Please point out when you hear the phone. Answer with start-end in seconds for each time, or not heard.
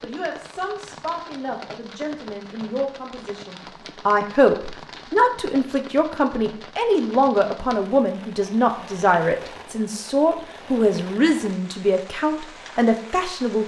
not heard.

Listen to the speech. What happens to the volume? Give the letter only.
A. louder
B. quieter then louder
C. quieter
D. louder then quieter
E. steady
A.